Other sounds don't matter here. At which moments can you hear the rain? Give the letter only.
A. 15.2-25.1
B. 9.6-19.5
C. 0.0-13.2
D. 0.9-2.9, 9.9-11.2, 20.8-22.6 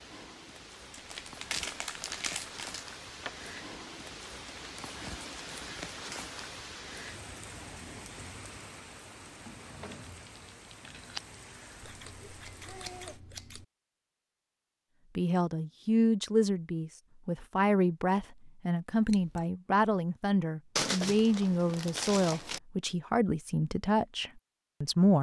C.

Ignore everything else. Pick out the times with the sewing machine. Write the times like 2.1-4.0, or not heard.
not heard.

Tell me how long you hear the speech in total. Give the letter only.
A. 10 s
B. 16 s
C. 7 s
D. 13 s
A.